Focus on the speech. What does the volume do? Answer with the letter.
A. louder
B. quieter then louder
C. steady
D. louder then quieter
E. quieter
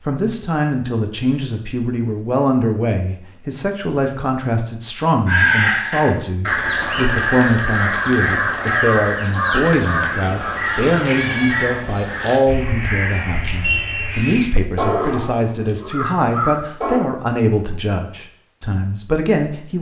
C.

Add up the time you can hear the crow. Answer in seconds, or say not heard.
12 s.